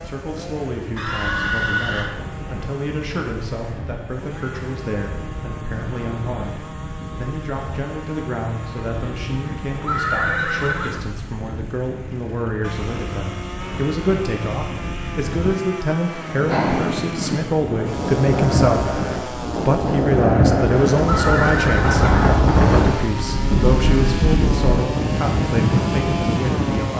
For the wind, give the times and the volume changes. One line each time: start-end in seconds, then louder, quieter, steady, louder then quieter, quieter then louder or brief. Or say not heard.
0.0-26.9 louder.